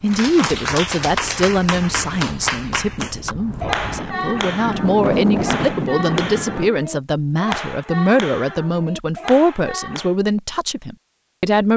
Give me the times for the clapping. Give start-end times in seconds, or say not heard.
0.1-10.2.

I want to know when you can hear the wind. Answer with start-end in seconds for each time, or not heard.
0.0-6.7.